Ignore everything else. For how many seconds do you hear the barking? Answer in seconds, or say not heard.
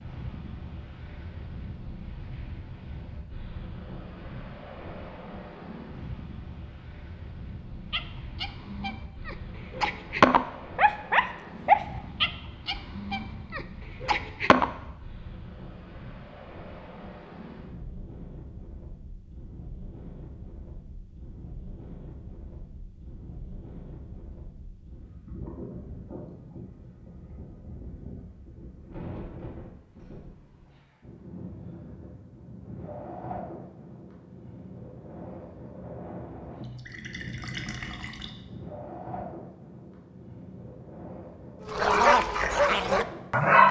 9 s.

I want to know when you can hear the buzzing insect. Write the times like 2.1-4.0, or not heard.
not heard.